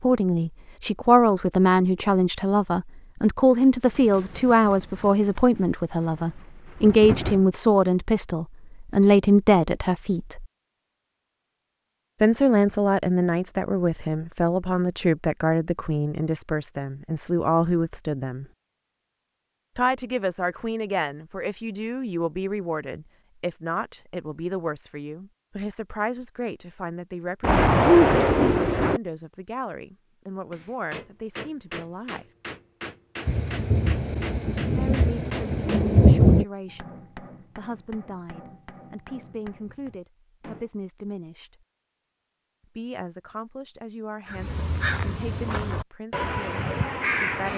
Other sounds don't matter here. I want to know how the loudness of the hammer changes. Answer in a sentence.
The loudness of the hammer goes down.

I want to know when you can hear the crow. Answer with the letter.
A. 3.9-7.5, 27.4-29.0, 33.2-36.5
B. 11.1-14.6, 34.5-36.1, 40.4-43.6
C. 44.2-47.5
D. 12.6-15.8
C.